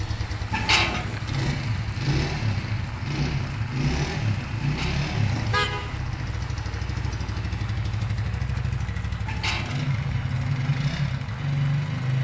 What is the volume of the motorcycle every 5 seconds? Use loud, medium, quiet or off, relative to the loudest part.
loud, medium, loud.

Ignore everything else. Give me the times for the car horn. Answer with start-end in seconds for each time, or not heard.
0.5-1.2, 4.6-6.0, 9.2-9.9.